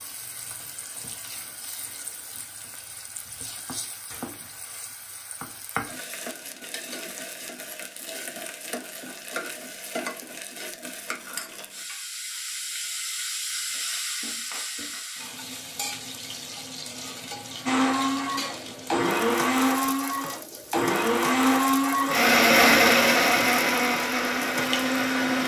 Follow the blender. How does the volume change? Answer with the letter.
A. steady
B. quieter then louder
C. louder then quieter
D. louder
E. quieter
C.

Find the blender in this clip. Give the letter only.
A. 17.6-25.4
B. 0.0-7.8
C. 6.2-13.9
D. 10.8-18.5
A.